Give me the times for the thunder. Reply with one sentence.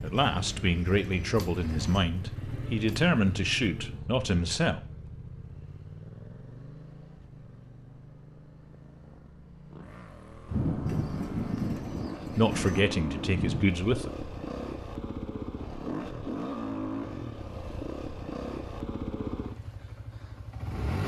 The thunder can be heard from 10.4 to 13.7 s.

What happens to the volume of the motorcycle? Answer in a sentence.
The loudness of the motorcycle goes down, then up.